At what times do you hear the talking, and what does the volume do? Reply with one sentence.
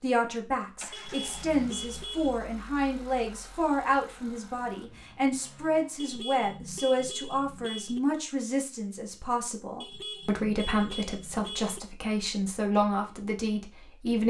You can hear the talking from 0.0 to 14.2 s, at a steady volume.